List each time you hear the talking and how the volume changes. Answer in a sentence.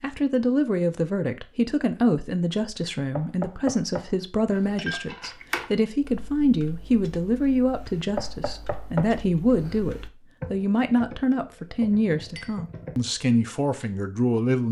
The talking can be heard from 0.0 to 14.6 s, at a steady volume.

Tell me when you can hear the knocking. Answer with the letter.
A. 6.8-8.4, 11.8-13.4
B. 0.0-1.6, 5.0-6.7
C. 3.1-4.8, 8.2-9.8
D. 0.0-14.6
C.